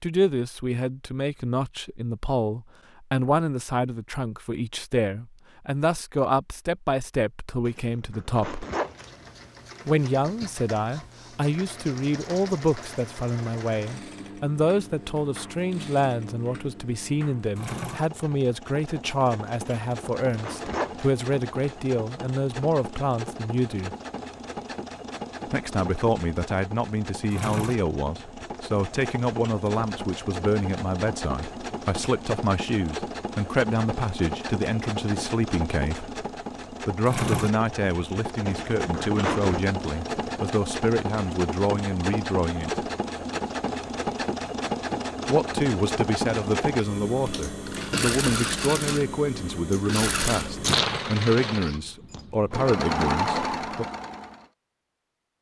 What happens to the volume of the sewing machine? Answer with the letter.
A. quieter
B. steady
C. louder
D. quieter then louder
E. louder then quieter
C.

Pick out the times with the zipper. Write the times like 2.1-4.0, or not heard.
7.7-9.2, 19.6-21.1, 38.5-39.6.